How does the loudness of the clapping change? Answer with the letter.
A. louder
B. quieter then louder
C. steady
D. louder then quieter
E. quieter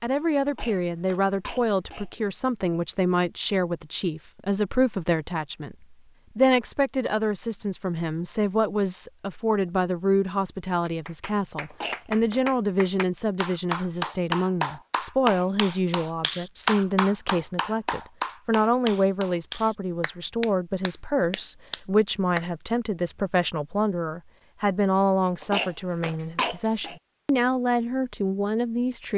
D.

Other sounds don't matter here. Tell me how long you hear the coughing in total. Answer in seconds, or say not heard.
4 s.